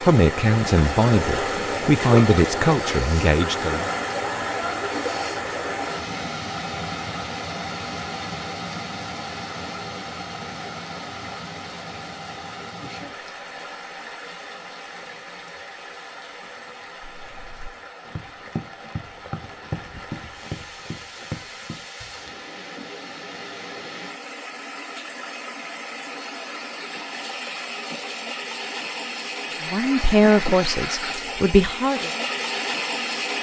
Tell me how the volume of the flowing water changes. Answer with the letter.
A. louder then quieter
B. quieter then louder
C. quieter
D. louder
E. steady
B.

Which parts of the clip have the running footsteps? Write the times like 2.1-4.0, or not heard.
17.0-22.4.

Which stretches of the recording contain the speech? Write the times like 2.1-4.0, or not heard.
0.0-3.9, 29.6-32.1.